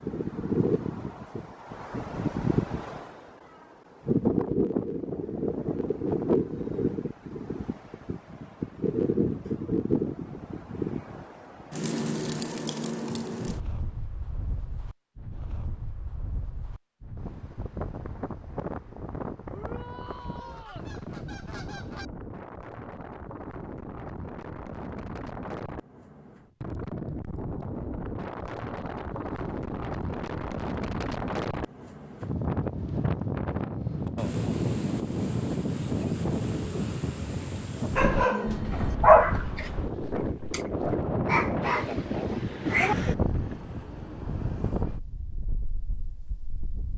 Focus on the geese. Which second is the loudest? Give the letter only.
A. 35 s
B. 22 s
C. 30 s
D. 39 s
B.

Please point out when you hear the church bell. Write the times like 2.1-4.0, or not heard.
not heard.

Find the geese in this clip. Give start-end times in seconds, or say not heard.
20.1-22.1.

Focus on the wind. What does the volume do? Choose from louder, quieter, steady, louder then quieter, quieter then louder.
quieter then louder.